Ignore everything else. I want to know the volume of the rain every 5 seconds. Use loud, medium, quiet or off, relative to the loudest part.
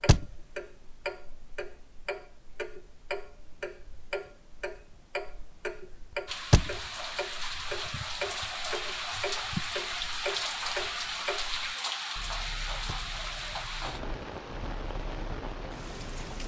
off, loud, loud, medium.